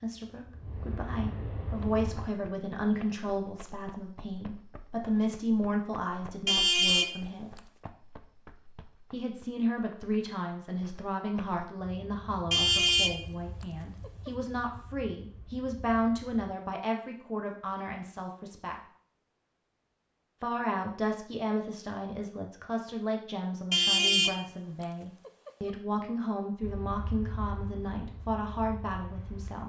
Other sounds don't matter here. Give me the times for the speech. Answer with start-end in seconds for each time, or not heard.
0.0-7.5, 9.1-18.8, 20.4-29.6.